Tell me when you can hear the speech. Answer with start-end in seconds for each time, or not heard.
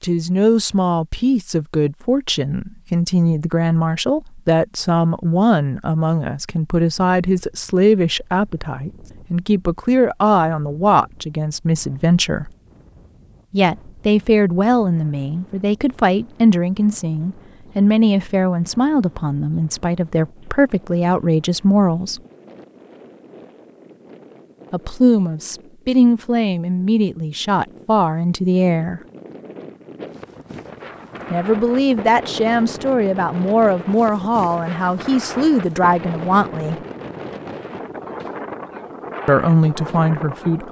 0.0-12.5, 13.5-22.2, 24.7-29.0, 31.3-36.8, 39.2-40.6.